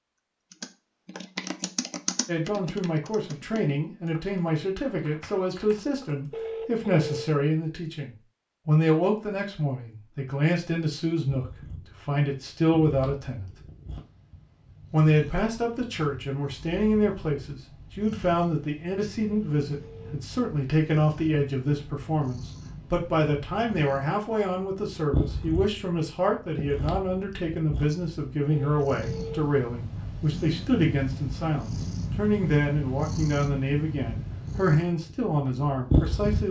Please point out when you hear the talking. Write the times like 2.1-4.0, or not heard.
2.2-13.5, 14.9-36.4.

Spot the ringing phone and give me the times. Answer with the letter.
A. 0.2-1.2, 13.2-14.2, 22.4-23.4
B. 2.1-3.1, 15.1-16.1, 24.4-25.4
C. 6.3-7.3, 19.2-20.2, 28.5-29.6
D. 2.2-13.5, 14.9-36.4
C.